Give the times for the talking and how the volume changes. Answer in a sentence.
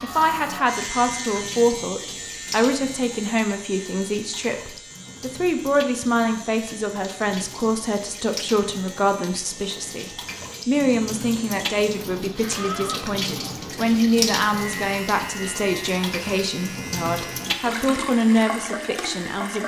The talking can be heard from 0.0 to 19.6 s, at a steady volume.